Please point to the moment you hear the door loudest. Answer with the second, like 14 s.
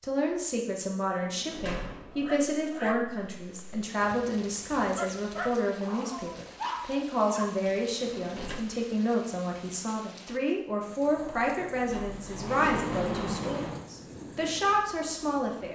13 s.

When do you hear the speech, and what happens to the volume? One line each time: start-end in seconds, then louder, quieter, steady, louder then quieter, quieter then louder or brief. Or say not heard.
0.0-15.7 steady.